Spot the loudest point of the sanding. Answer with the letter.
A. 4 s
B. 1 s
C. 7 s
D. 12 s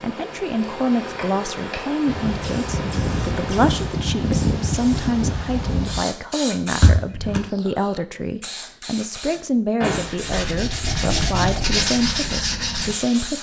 D.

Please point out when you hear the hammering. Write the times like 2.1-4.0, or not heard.
not heard.